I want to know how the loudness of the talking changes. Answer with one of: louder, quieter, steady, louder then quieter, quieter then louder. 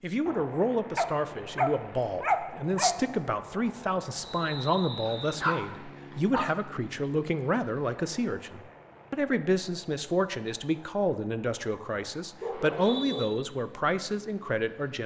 steady.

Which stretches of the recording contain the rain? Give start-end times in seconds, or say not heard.
not heard.